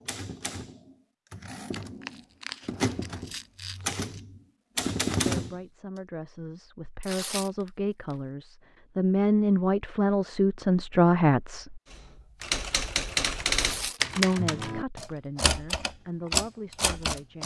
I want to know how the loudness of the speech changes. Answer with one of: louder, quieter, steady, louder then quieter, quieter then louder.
louder then quieter.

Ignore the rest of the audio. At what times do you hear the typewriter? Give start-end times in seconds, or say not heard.
0.0-5.5, 11.9-17.4.